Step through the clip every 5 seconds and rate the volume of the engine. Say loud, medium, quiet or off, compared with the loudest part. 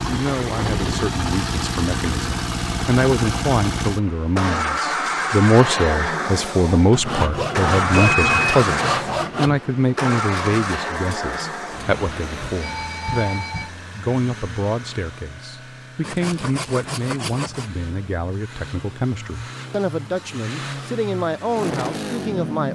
loud, loud, medium, quiet, medium.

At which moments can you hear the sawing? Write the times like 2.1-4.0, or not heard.
6.9-9.6, 16.0-17.7.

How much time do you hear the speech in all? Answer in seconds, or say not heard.
23 s.